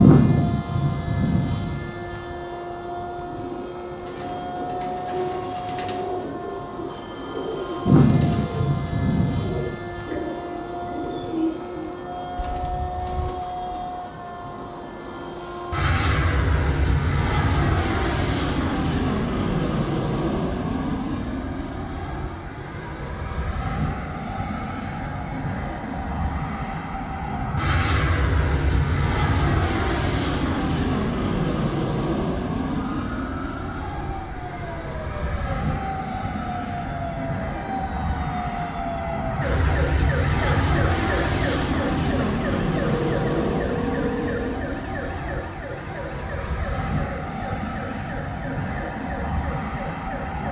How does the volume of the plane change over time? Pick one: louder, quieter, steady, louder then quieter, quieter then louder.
steady.